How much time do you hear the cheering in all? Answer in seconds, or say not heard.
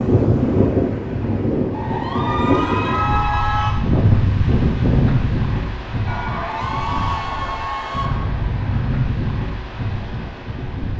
4 s.